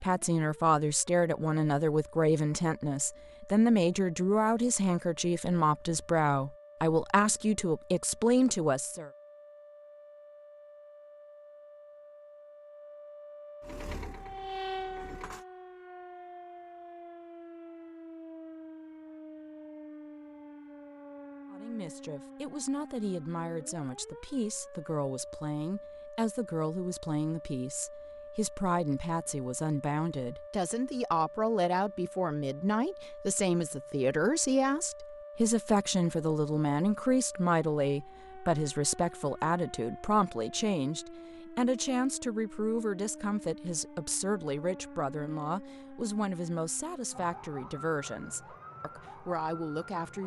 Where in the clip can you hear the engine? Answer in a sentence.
You can hear the engine from 13.6 to 15.4 s.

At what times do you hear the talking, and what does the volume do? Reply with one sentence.
You can hear the talking from 0.0 to 9.1 s, at a steady volume; and from 21.5 to 50.2 s, getting louder then quieter.